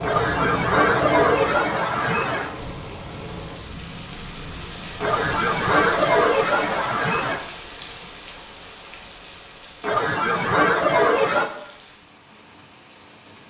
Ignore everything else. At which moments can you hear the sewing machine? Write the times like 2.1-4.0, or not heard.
0.0-3.6.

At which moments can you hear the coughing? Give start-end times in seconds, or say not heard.
0.0-2.5, 5.0-7.4, 9.8-11.4.